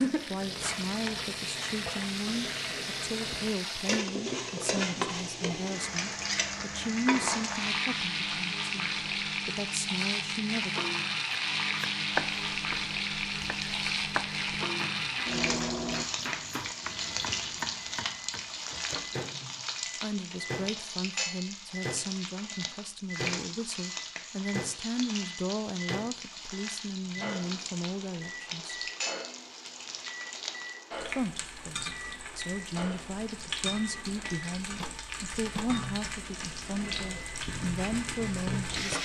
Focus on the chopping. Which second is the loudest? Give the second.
12 s.